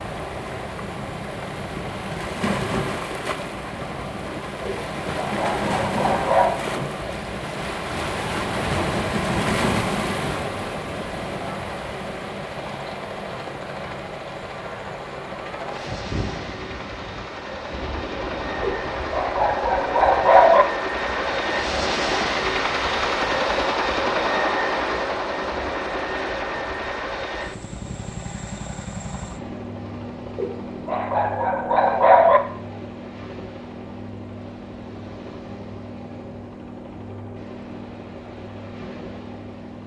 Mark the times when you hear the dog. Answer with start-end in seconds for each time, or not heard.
4.7-6.5, 18.6-20.6, 30.4-32.4.